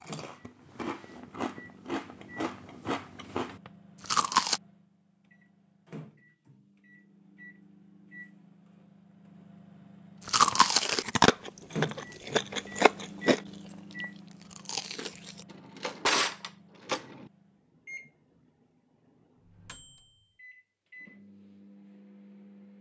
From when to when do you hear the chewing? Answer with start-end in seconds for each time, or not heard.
0.0-4.6, 10.2-15.4.